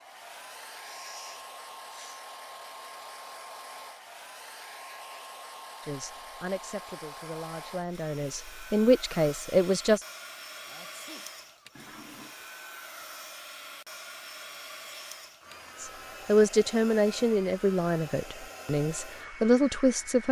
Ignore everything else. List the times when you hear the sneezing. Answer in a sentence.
You can hear the sneezing from 0.8 to 2.2 s and from 10.7 to 11.3 s.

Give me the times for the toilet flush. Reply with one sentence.
You can hear the toilet flush from 11.8 to 12.3 s.